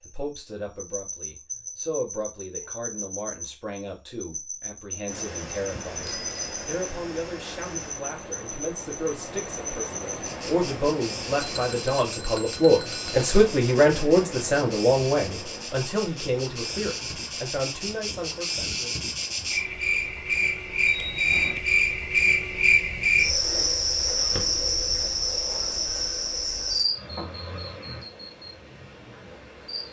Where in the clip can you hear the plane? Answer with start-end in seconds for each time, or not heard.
not heard.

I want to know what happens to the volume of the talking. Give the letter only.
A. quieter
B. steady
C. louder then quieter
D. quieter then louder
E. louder
C.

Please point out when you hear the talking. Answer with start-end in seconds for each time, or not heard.
0.0-19.1.